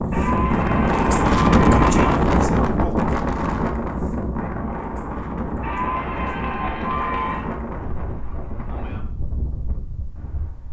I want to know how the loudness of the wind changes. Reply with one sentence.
The volume of the wind goes down.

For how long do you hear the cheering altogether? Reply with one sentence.
You can hear the cheering for 4 seconds altogether.